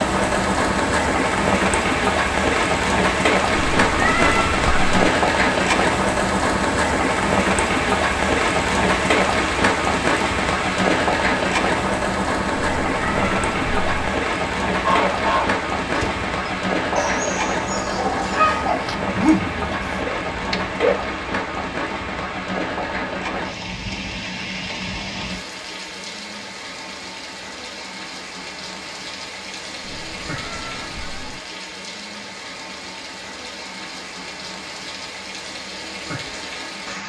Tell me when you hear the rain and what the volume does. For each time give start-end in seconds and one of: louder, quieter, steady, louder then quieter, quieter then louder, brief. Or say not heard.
0.0-37.0 quieter.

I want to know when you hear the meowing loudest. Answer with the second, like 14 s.
4 s.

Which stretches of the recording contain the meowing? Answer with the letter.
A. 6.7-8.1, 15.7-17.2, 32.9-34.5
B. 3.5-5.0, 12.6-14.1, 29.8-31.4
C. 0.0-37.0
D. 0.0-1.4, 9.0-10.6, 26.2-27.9
B.